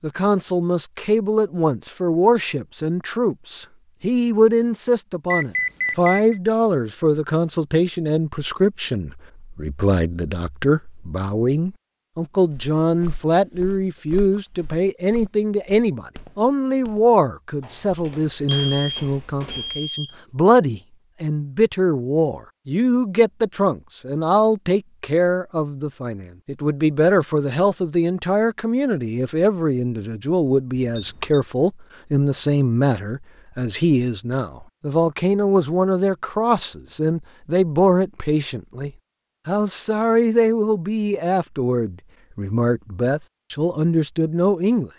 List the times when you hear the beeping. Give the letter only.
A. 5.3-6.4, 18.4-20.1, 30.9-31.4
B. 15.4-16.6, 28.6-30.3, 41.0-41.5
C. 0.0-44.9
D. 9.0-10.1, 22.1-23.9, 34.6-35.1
A.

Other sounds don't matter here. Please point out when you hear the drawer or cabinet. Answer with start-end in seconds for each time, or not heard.
not heard.